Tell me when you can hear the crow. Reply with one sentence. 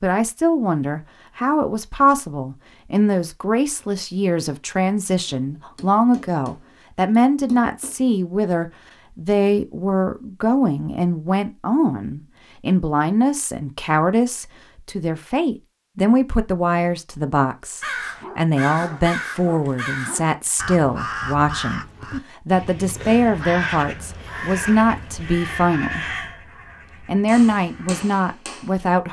The crow can be heard from 17.8 to 28.1 s.